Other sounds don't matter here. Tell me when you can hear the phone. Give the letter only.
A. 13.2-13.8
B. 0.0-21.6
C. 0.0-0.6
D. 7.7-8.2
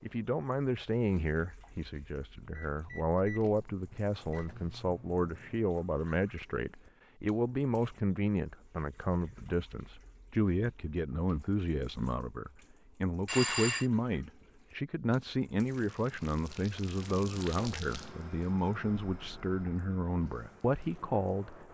A.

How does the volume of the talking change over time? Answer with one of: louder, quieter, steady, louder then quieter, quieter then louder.
steady.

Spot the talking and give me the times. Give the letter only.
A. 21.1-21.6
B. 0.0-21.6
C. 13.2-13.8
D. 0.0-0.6
B.